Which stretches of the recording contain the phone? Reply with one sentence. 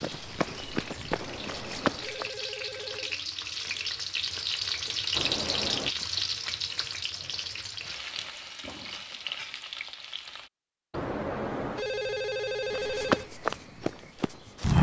The phone can be heard from 1.1 to 3.2 s, from 5.2 to 6.0 s and from 10.9 to 13.3 s.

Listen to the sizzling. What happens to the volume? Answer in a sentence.
The loudness of the sizzling goes up, then down.